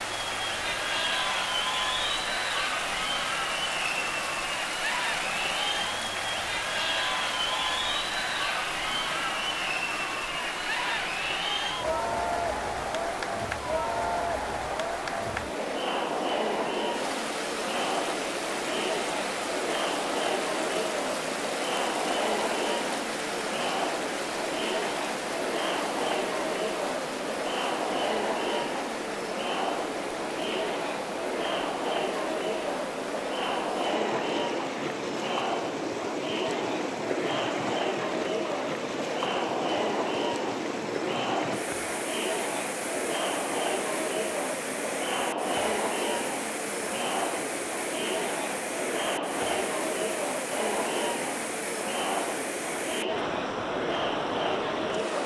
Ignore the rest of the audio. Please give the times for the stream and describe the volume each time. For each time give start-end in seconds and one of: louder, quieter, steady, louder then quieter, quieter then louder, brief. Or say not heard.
0.0-55.2 steady.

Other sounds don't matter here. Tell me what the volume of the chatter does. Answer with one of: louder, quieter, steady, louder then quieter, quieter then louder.
steady.